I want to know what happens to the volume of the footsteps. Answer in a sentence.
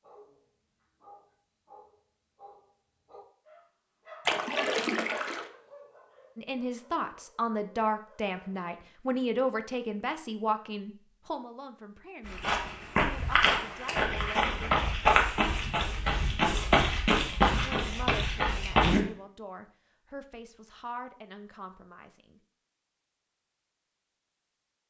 The loudness of the footsteps stays about the same.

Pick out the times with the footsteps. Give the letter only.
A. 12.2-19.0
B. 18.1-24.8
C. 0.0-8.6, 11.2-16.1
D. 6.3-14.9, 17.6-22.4
A.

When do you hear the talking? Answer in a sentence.
The talking can be heard from 6.3 to 14.9 s and from 17.6 to 22.4 s.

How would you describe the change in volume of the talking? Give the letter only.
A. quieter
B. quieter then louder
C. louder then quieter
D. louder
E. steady
A.